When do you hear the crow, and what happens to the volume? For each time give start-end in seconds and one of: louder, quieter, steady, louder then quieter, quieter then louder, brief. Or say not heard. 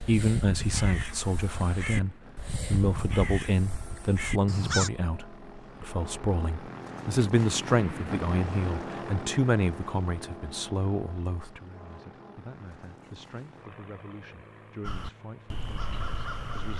0.0-4.9 steady
14.8-16.7 brief.